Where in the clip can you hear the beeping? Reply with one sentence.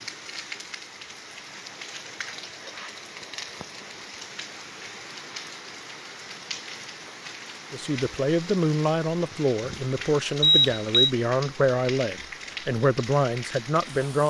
The beeping can be heard from 10.4 to 11.1 s.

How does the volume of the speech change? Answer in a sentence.
The volume of the speech stays about the same.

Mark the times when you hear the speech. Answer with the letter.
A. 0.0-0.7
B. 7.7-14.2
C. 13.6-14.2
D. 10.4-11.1
B.